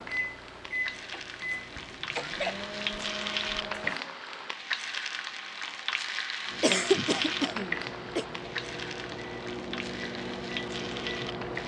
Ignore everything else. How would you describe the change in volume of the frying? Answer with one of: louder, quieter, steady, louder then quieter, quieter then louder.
louder then quieter.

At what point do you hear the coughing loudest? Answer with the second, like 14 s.
7 s.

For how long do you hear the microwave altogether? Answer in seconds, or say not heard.
9 s.